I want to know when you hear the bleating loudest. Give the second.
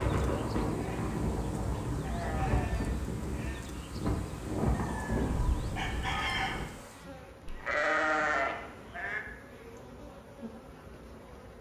8 s.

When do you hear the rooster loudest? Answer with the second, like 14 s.
6 s.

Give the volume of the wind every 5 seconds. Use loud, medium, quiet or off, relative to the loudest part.
loud, loud, off.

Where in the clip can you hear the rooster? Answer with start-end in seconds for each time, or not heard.
4.7-6.5.